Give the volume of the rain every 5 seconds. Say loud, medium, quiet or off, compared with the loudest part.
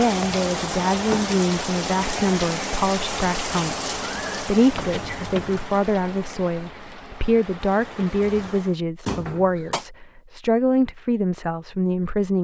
loud, medium, off.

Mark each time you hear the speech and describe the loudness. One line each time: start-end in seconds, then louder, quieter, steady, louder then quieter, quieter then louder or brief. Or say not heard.
0.0-12.4 steady.